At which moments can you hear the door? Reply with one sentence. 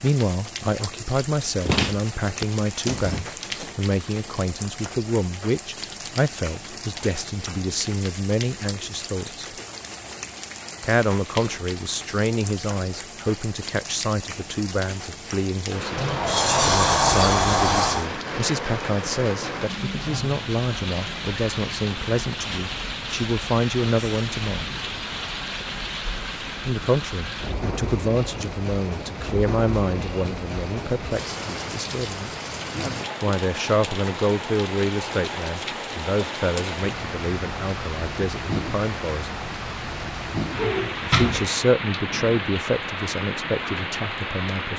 The door can be heard from 1.6 to 3.6 s, from 15.9 to 18.1 s and from 40.5 to 41.5 s.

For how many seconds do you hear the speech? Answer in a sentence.
You can hear the speech for 39 seconds altogether.